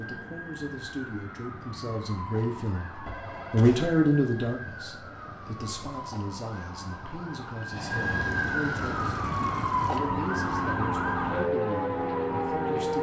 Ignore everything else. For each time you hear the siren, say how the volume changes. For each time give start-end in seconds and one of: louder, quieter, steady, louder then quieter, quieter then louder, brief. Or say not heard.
0.0-12.9 louder.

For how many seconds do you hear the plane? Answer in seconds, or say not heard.
13 s.